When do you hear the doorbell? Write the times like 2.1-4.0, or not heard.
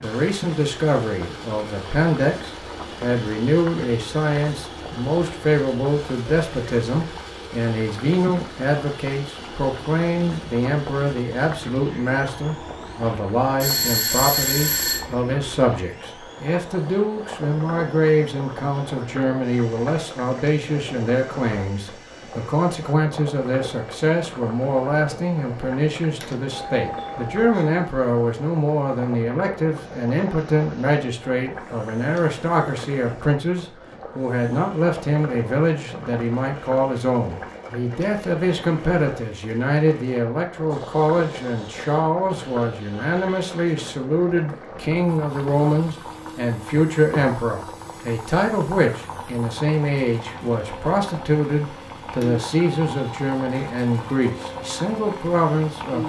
13.6-15.1, 26.2-27.9, 52.2-53.8.